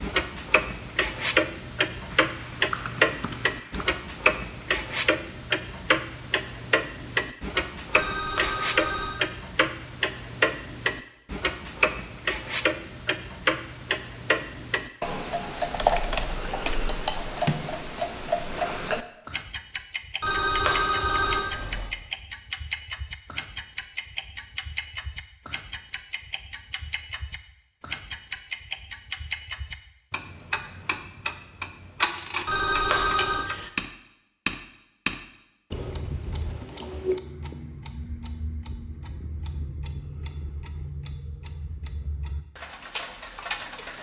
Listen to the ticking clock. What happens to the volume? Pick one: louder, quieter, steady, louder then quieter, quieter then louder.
quieter.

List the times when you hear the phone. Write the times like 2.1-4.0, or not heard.
7.9-9.1, 20.2-21.9, 32.5-33.5.